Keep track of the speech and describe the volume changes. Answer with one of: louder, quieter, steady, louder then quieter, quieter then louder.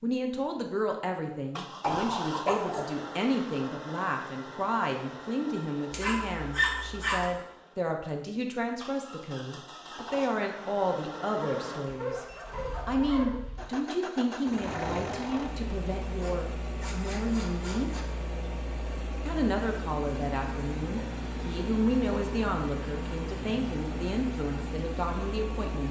steady.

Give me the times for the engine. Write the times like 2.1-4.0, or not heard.
0.0-25.8.